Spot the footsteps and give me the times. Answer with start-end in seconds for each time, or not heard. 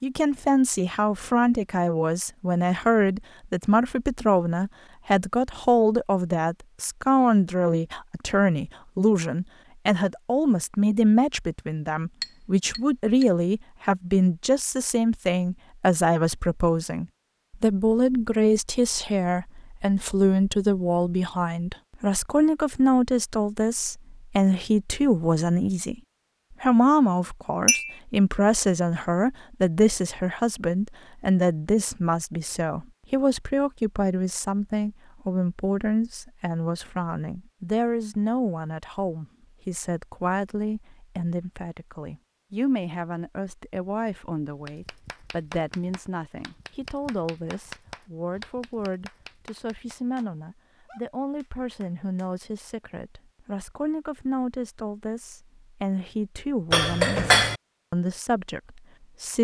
not heard.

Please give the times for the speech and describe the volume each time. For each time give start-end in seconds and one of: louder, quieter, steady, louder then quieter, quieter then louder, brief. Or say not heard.
0.0-25.9 steady
26.6-59.4 quieter.